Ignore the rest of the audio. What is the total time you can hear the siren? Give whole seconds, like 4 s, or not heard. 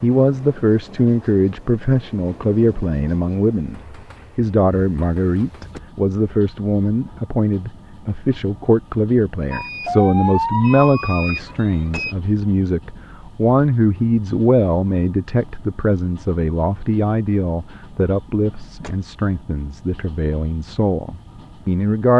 3 s.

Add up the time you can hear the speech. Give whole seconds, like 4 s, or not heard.
22 s.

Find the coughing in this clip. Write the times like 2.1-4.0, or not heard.
not heard.